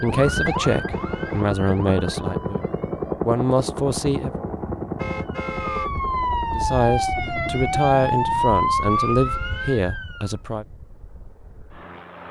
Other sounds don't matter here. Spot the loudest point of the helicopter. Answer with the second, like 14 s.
3 s.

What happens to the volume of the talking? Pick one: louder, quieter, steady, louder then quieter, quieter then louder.
steady.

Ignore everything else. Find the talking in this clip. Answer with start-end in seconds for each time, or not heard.
0.0-4.4, 6.5-10.7.